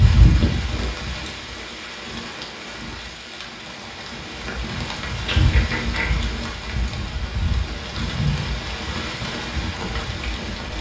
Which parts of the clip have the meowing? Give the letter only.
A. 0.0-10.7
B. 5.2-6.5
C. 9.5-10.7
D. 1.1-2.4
B.